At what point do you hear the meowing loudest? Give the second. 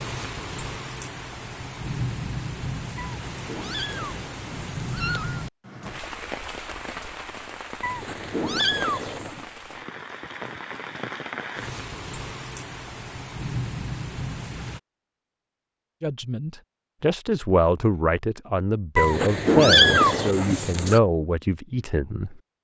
20 s.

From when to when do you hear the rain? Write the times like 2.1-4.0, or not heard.
0.0-14.8.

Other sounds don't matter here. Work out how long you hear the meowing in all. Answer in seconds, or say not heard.
6 s.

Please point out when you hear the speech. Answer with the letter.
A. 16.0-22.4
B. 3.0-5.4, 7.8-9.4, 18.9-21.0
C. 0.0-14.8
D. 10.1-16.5
A.